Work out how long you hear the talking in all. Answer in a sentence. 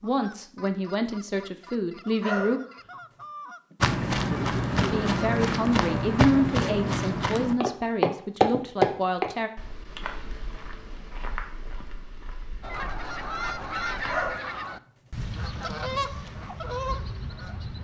You can hear the talking for 7 seconds altogether.